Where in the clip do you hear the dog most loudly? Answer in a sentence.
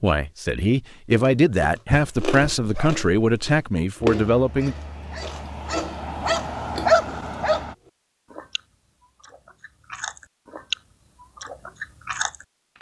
The loudest moment of the dog is at 7 seconds.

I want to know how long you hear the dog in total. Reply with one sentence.
You can hear the dog for 6 seconds altogether.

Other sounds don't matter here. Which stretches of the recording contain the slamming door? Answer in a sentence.
The slamming door can't be heard in this clip.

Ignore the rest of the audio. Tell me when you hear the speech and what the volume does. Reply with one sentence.
You can hear the speech from 0.0 to 4.8 s, at a steady volume.